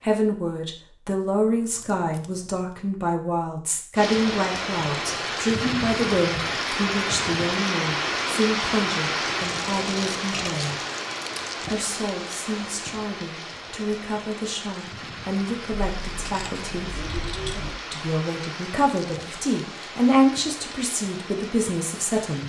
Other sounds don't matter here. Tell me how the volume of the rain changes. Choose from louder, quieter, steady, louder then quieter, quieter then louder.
quieter.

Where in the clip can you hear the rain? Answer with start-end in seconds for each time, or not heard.
4.0-22.4.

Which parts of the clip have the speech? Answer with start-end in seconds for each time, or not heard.
0.0-10.8, 11.7-17.1, 17.9-22.4.